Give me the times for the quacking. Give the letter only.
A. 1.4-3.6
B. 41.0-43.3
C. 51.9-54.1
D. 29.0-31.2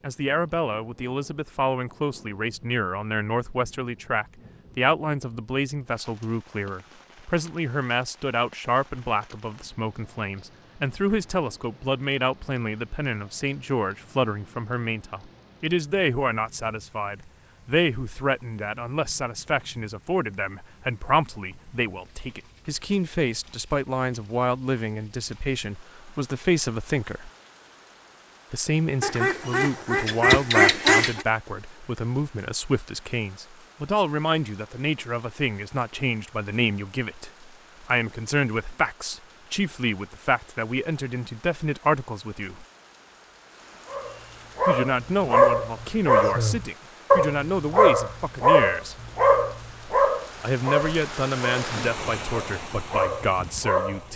D.